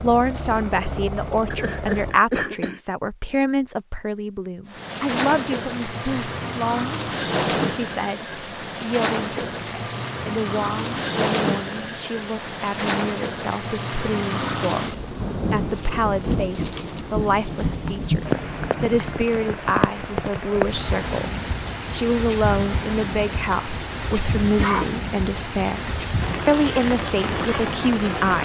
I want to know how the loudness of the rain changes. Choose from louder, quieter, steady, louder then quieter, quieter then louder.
steady.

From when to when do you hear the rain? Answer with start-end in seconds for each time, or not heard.
4.7-28.4.